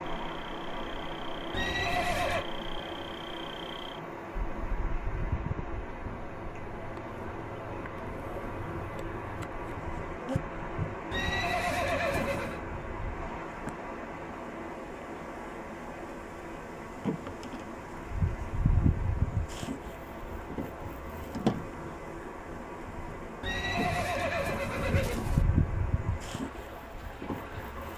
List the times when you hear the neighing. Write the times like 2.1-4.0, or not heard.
1.5-2.5, 11.1-12.6, 23.4-25.4.